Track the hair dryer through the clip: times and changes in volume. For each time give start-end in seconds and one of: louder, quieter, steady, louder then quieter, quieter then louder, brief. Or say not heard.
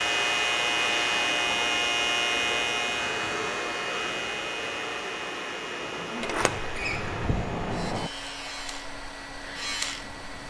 0.0-10.4 quieter.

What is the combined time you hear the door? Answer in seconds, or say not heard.
2 s.